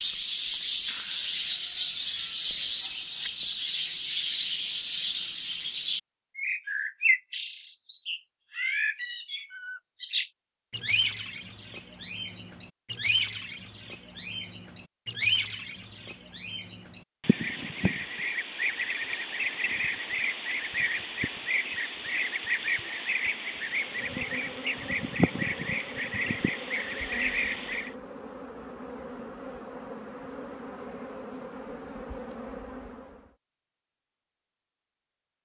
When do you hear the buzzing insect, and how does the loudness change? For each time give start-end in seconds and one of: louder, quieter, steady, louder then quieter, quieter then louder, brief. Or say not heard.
23.6-33.4 steady.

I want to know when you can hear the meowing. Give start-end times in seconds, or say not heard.
not heard.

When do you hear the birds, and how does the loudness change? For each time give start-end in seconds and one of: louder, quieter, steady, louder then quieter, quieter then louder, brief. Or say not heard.
0.0-27.9 steady.